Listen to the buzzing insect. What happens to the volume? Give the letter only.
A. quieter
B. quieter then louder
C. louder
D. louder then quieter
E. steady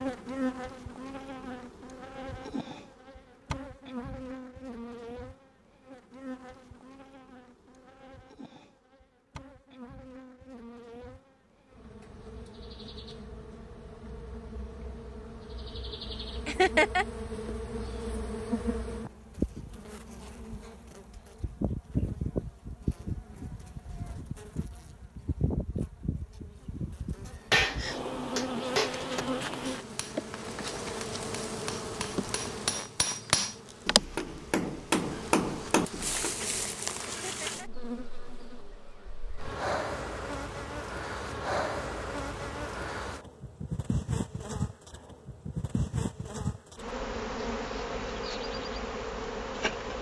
C.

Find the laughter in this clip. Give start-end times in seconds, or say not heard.
16.4-17.1, 37.2-37.7.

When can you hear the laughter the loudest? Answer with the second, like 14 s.
17 s.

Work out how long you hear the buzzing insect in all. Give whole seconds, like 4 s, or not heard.
50 s.